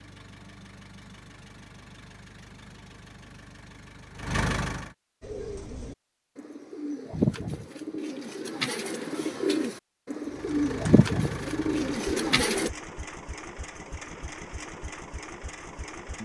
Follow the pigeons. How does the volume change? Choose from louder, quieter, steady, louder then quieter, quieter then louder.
louder.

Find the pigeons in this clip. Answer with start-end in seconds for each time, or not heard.
5.2-12.7.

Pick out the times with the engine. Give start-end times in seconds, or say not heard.
0.0-4.9, 10.2-16.2.